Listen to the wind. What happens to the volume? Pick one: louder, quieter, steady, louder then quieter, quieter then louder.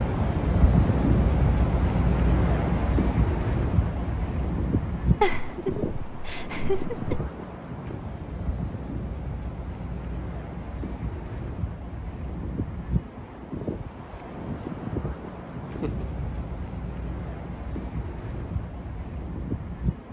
quieter.